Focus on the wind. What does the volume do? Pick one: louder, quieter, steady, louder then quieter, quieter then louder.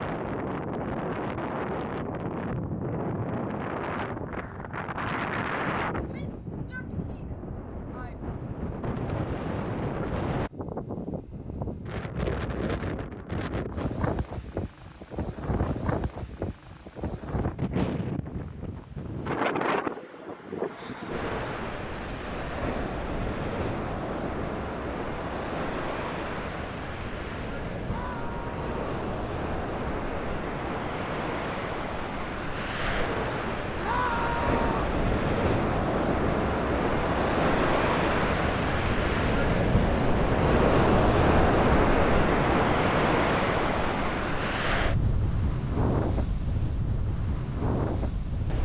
louder.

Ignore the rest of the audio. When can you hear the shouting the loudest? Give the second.
34 s.